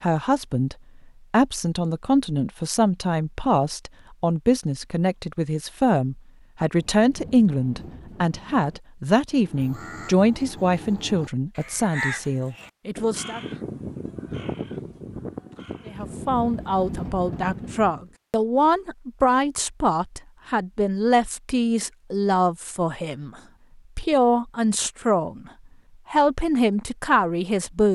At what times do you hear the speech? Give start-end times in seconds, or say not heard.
0.0-13.4, 15.8-23.3, 23.9-25.5, 26.1-27.9.